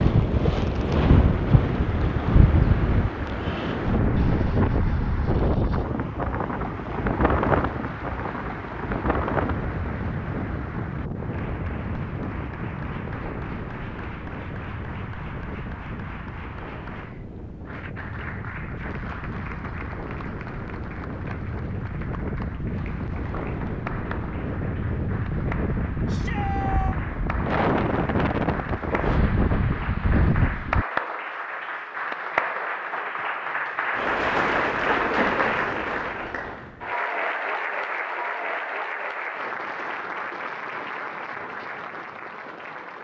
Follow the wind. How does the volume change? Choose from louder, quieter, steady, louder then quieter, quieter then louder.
quieter then louder.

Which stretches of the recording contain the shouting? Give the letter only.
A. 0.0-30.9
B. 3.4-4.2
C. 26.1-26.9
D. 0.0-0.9
C.